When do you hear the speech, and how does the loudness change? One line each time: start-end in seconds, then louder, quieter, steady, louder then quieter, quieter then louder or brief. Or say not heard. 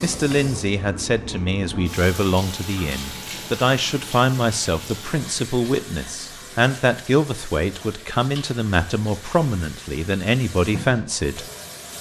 0.0-11.4 steady.